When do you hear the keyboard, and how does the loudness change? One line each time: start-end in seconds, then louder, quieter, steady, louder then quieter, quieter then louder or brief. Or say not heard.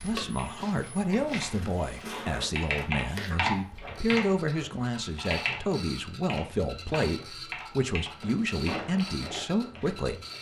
0.3-9.2 louder then quieter.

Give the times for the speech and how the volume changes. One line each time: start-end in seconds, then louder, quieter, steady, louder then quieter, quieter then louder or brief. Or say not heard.
0.0-10.2 steady.